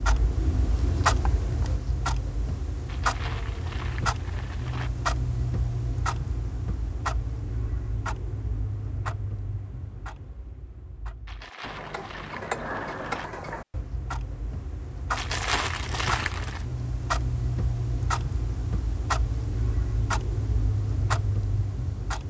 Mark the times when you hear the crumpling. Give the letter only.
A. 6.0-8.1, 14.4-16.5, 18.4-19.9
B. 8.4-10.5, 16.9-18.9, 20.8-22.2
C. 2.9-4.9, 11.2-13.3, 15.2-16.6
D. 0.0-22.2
C.